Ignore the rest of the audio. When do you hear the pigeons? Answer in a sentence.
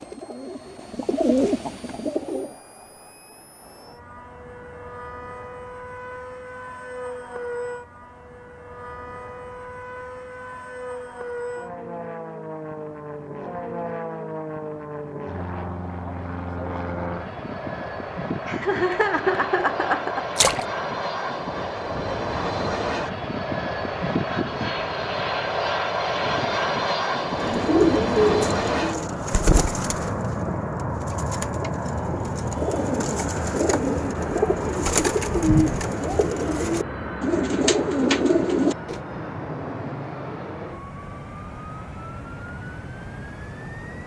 The pigeons can be heard from 0.0 to 2.6 s and from 27.4 to 39.0 s.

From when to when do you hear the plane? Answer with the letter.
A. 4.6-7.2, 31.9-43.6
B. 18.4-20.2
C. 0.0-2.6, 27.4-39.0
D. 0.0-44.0
D.